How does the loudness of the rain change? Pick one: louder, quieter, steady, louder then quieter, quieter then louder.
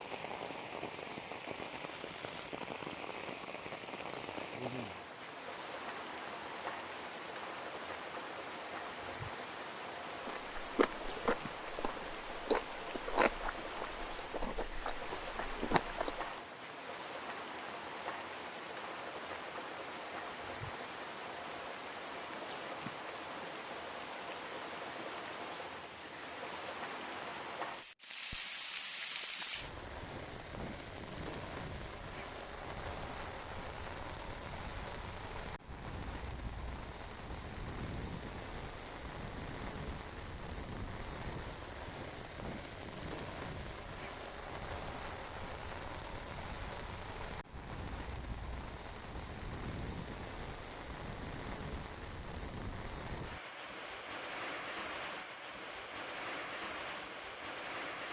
steady.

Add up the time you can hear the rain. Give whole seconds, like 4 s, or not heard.
58 s.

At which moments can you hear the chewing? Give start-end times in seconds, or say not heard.
10.2-16.2.